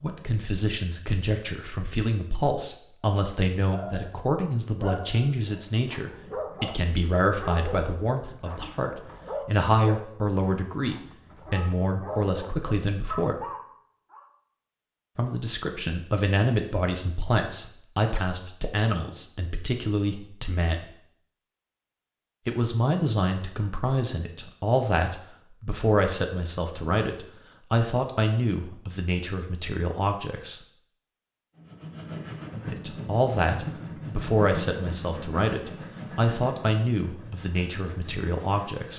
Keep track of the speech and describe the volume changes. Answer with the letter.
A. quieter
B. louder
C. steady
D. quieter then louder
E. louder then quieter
C.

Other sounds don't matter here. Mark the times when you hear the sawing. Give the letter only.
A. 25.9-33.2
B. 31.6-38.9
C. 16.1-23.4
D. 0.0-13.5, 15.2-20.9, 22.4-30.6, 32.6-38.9
B.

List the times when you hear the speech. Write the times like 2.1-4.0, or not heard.
0.0-13.5, 15.2-20.9, 22.4-30.6, 32.6-38.9.